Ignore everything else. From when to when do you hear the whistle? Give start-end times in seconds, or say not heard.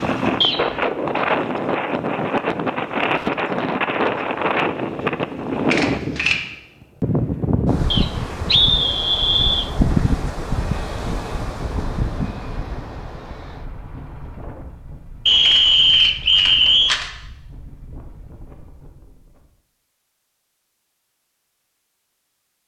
0.4-0.8, 7.9-9.7, 15.2-17.0.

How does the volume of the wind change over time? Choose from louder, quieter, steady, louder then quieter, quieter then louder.
quieter.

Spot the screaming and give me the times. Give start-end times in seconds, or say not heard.
not heard.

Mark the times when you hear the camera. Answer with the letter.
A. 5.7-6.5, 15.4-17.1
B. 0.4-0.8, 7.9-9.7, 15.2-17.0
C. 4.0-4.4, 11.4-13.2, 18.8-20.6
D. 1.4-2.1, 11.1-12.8
A.